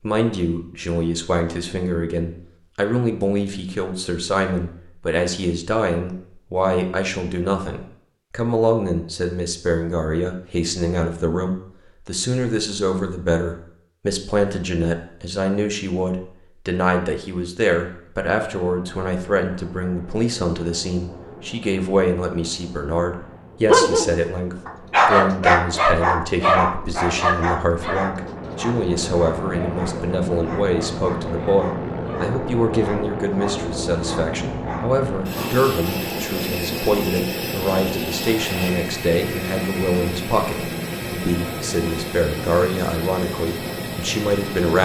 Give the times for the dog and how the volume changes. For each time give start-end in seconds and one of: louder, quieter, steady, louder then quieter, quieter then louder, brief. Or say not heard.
23.6-35.5 quieter.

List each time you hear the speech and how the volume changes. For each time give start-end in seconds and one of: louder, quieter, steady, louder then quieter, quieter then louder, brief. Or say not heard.
0.0-44.8 steady.